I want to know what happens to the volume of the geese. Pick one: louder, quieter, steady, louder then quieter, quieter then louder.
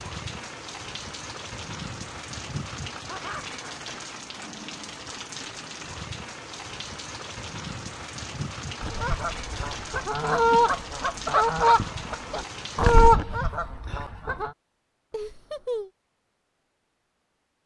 louder then quieter.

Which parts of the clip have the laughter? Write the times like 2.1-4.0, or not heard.
3.0-3.6, 15.1-15.9.